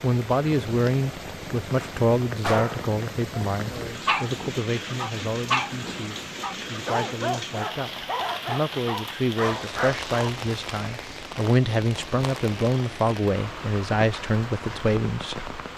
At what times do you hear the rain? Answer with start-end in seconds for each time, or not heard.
0.0-15.7.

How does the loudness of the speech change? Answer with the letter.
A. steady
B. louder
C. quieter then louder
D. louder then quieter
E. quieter
C.